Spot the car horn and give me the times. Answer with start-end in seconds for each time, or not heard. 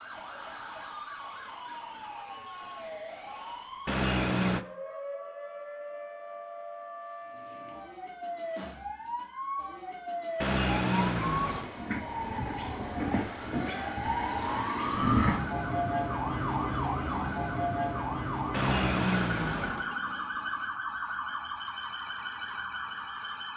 3.9-4.7, 10.4-11.7, 18.5-19.9.